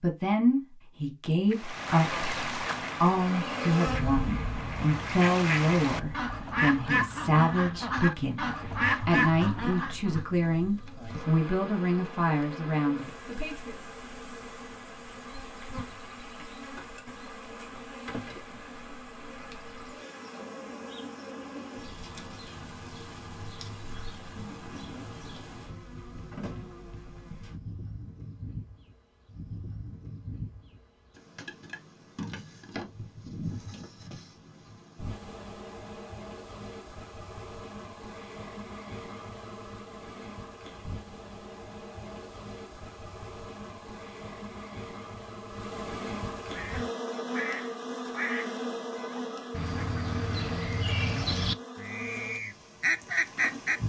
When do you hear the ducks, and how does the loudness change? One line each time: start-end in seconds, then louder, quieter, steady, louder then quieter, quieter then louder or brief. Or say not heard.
1.5-10.2 quieter then louder
46.5-53.8 louder.